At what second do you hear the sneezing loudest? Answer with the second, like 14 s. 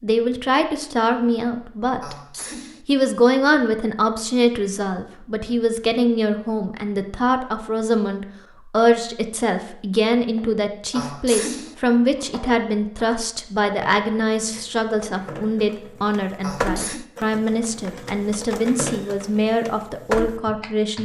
11 s.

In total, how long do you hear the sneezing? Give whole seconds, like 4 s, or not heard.
2 s.